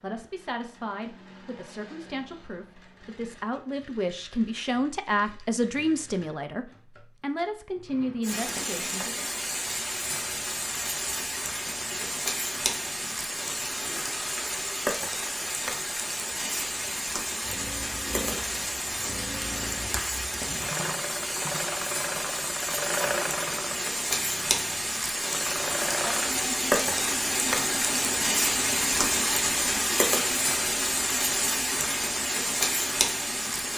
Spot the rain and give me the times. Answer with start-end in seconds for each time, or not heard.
8.2-33.7.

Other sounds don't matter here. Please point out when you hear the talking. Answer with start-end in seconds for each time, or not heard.
0.0-9.2.